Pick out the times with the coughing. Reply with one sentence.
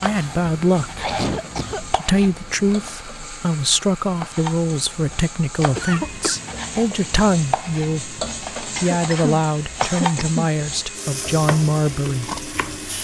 You can hear the coughing from 0.8 to 1.9 s, from 5.8 to 6.3 s and from 8.8 to 10.5 s.